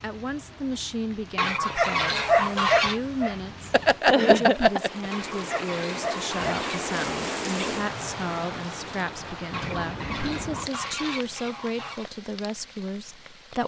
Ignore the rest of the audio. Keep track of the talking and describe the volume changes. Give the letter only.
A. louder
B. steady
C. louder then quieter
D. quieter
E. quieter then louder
B.